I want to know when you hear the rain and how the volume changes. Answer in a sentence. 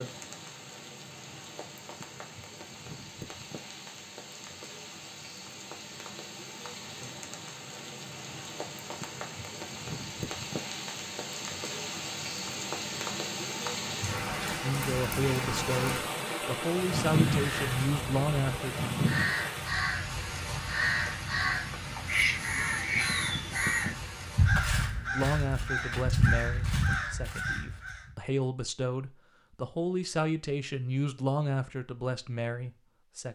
The rain can be heard from 0.0 to 24.7 s, getting louder then quieter.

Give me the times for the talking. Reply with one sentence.
The talking can be heard from 14.6 to 18.8 s and from 25.1 to 33.3 s.